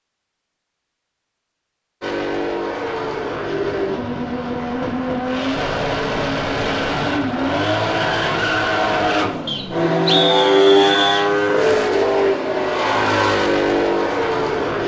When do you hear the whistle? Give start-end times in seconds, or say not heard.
9.4-11.2.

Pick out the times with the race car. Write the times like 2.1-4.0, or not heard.
2.0-14.8.